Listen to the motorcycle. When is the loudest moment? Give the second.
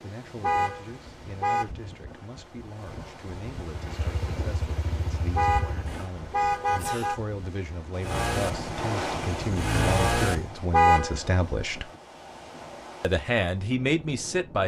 10 s.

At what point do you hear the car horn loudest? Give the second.
11 s.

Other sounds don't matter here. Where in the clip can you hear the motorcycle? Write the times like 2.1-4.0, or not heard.
3.6-6.1, 8.0-10.5.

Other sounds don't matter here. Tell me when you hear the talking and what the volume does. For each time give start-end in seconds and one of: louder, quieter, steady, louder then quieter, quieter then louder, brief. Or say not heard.
0.0-11.9 louder
13.0-14.6 brief.